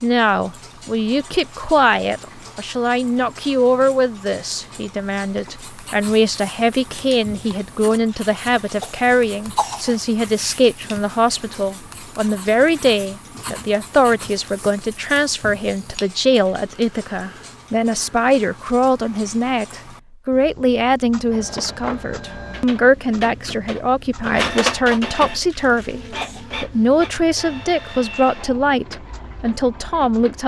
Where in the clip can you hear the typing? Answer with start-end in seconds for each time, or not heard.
not heard.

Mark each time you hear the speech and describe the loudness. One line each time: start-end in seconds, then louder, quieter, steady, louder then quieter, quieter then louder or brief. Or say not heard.
0.0-30.4 steady.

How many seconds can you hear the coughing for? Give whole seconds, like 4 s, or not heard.
3 s.